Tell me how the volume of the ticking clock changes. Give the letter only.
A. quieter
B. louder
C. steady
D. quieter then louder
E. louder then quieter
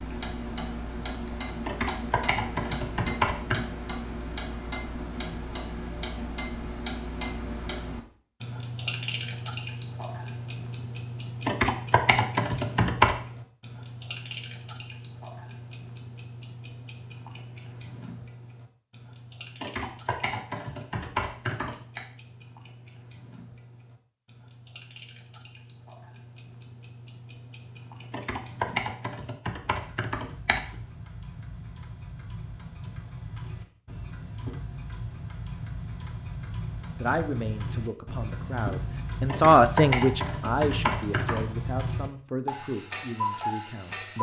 D.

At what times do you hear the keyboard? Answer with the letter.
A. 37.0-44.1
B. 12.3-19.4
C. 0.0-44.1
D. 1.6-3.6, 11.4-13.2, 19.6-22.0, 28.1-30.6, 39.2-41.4
D.